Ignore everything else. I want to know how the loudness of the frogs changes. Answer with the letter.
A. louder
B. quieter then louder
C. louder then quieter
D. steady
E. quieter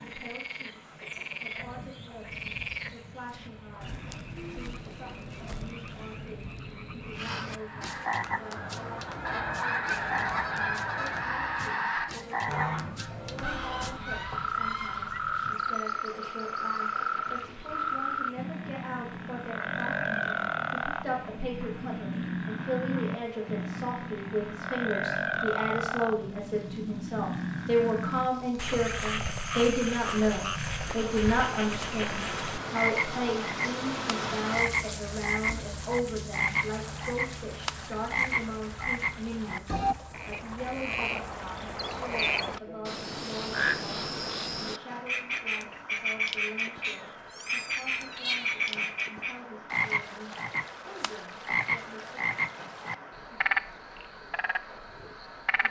A.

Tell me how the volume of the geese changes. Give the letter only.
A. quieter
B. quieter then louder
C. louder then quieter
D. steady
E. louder
C.